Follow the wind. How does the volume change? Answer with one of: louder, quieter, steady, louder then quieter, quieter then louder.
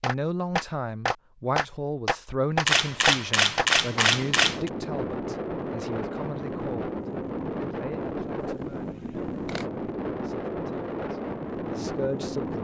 steady.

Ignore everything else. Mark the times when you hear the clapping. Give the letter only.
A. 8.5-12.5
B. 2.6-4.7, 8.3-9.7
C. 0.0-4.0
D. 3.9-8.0
C.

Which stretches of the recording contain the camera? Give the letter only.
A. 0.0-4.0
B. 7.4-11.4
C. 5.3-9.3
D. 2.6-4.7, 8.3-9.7
D.